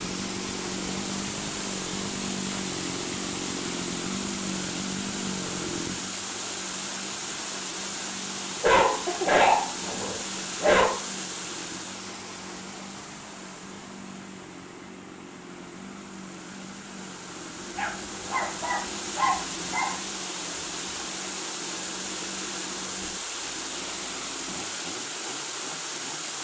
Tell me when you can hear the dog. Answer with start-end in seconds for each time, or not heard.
8.6-10.9, 17.8-20.0.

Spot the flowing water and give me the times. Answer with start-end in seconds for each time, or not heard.
0.0-26.3.